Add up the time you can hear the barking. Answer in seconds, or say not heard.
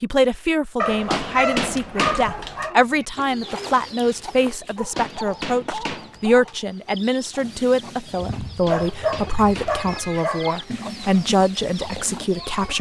6 s.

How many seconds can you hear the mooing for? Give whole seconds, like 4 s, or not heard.
not heard.